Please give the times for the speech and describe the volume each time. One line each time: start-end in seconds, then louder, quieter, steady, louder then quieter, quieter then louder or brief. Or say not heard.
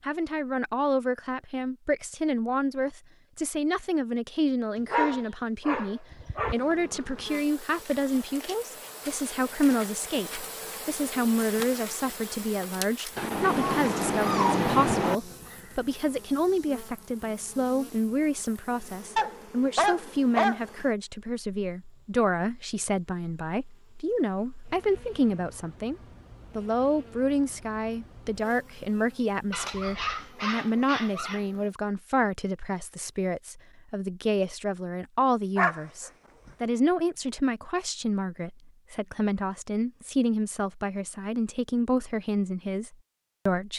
0.0-25.9 steady
26.6-43.7 steady.